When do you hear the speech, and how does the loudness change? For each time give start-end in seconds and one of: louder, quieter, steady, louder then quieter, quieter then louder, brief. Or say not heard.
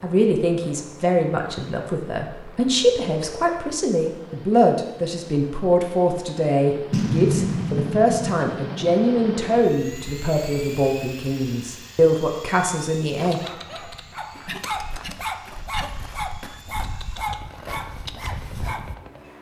0.0-13.4 steady.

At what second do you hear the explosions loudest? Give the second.
7 s.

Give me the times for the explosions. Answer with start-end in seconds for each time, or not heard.
6.9-9.1.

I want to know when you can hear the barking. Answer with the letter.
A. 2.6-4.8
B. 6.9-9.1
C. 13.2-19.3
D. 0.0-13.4
C.